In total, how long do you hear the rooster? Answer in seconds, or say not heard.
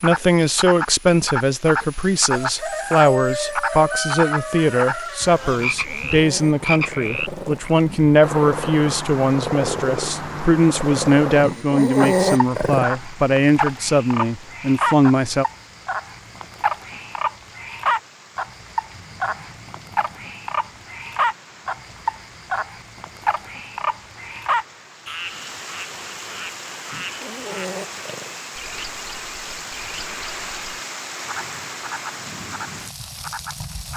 3 s.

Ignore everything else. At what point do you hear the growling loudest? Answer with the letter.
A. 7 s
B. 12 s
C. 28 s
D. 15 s
B.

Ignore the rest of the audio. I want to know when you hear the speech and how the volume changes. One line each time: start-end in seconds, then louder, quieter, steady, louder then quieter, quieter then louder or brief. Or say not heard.
0.0-15.4 steady.